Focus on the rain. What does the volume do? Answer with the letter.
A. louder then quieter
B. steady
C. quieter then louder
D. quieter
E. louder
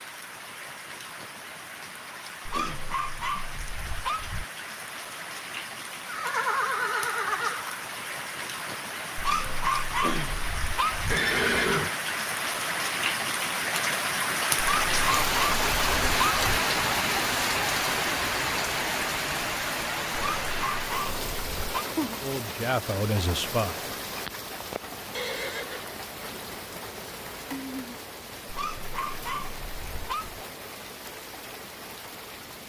A.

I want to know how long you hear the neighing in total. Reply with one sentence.
The neighing can be heard for 3 seconds in total.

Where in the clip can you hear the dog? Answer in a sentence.
You can hear the dog from 2.5 to 4.5 s, from 9.2 to 11.2 s, from 14.6 to 16.6 s, from 20.2 to 21.9 s and from 28.4 to 30.4 s.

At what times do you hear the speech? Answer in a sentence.
You can hear the speech from 22.1 to 23.9 s.